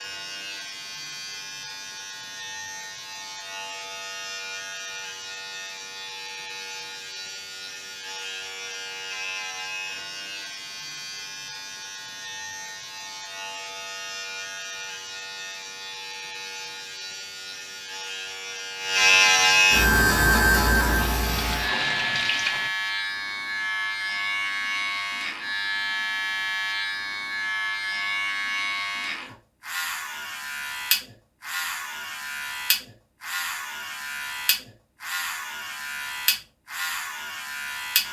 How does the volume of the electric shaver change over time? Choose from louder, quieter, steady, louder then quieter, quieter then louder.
louder then quieter.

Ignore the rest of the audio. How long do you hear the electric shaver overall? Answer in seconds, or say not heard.
38 s.